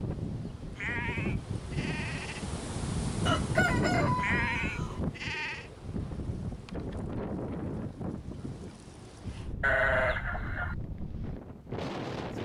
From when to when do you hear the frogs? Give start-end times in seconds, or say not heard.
not heard.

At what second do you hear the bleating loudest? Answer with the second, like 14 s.
10 s.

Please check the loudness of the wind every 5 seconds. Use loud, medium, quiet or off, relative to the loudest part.
loud, medium, medium.